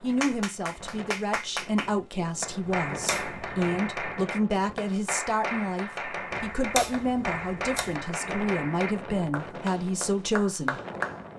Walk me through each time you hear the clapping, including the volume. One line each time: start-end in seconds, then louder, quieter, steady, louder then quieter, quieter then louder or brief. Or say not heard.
0.1-11.2 steady.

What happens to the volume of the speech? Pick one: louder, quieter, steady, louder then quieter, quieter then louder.
steady.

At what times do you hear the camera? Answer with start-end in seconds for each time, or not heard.
2.9-3.6, 6.3-8.0.